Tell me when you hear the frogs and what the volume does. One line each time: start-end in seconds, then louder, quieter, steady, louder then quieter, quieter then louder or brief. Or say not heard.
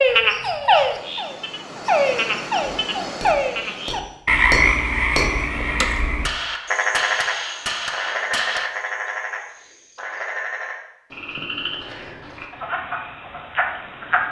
0.0-14.2 quieter.